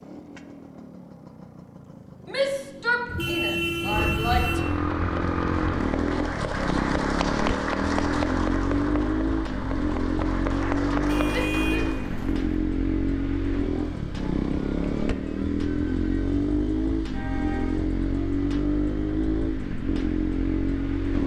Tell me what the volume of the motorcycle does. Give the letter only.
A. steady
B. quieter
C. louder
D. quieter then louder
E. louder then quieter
C.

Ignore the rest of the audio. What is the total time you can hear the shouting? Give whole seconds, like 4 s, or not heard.
3 s.